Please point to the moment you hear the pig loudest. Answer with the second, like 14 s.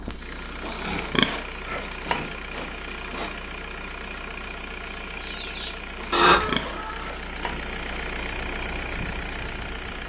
1 s.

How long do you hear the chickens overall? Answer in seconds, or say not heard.
2 s.